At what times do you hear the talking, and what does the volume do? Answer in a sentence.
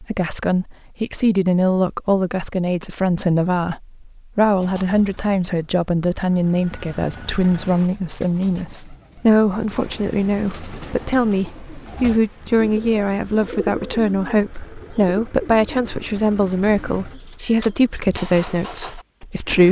The talking can be heard from 0.0 to 19.6 s, at a steady volume.